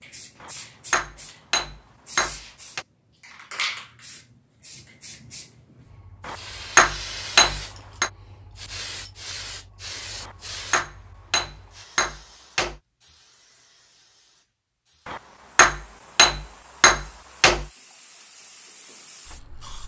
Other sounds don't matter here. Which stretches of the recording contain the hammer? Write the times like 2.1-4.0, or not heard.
0.4-2.9, 6.2-8.1, 10.2-12.8, 15.1-17.6.